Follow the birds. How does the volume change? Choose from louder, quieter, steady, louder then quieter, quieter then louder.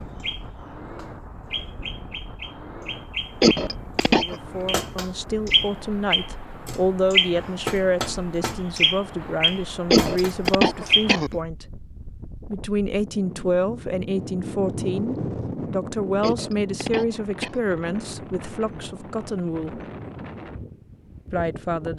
louder.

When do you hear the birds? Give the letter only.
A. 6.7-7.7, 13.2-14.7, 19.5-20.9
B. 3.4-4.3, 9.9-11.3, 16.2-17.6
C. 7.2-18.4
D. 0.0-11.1
D.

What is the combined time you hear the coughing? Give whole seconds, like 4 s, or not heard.
4 s.